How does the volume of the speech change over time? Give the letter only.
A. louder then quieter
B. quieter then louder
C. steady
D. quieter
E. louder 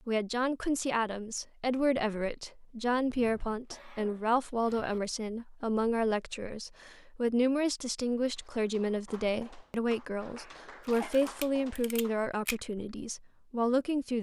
C.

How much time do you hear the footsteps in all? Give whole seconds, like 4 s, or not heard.
not heard.